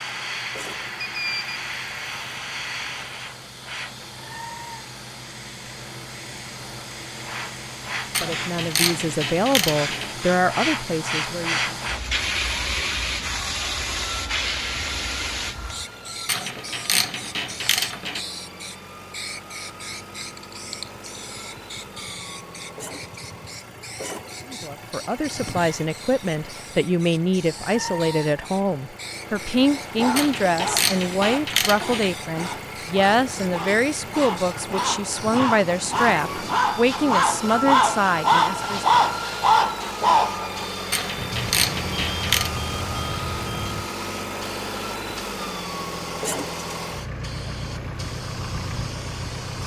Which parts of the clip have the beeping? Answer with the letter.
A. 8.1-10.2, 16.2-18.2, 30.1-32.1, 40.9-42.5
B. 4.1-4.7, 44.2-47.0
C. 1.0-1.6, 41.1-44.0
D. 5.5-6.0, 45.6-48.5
C.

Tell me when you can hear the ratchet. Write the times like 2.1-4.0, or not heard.
8.1-10.2, 16.2-18.2, 30.1-32.1, 40.9-42.5.